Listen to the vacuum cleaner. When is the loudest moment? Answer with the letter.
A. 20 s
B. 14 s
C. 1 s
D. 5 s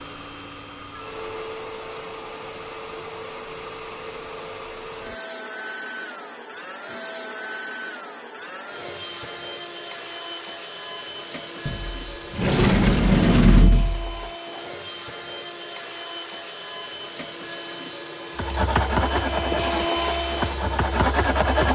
A.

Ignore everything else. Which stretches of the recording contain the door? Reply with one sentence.
You can hear the door from 11.7 to 14.2 s.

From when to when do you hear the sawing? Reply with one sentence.
You can hear the sawing from 18.4 to 21.7 s.